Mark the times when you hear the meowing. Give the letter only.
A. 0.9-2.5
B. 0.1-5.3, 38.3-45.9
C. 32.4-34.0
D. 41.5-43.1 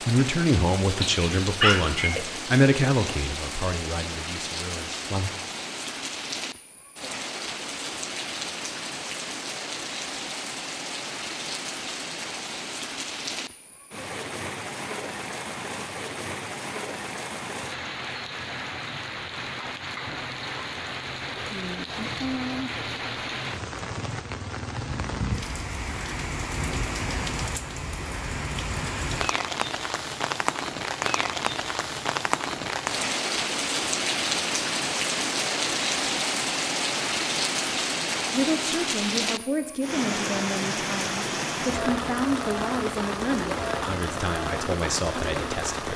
A.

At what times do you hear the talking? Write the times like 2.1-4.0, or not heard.
0.1-5.3, 38.3-45.9.